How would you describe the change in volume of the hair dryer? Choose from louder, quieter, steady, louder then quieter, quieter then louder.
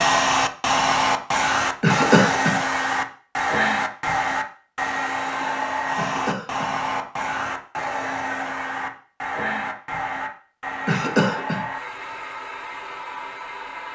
quieter.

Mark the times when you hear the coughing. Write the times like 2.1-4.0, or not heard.
1.8-2.5, 6.0-6.8, 10.8-11.7.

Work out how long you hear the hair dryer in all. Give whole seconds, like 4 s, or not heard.
14 s.